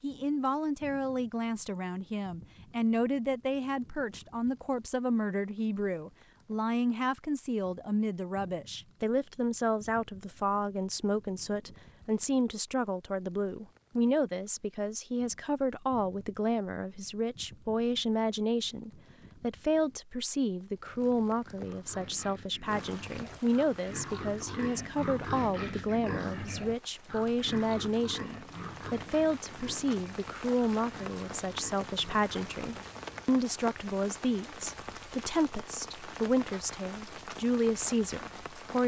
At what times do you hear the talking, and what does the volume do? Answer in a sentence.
You can hear the talking from 0.0 to 38.8 s, at a steady volume.